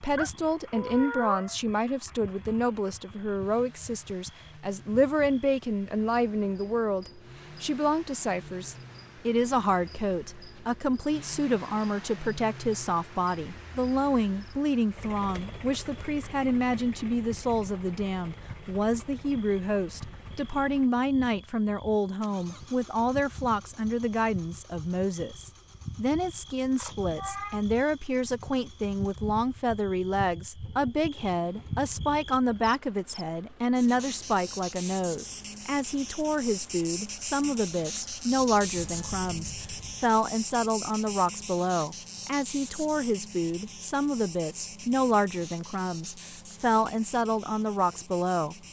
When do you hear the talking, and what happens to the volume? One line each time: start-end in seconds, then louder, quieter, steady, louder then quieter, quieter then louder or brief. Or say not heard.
0.0-48.5 steady.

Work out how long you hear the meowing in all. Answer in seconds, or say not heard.
4 s.